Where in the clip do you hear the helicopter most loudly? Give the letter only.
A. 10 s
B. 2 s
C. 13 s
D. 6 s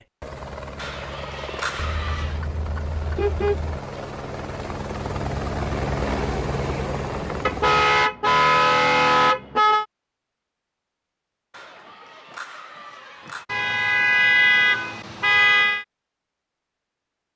D.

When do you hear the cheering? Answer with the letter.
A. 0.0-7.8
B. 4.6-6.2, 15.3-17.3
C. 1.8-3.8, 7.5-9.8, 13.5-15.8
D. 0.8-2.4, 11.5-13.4
D.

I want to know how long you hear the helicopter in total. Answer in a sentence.
The helicopter can be heard for 8 seconds in total.